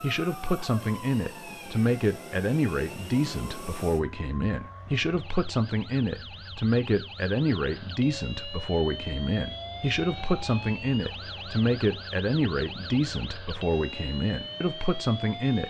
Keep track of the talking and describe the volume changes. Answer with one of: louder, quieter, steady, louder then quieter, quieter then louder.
steady.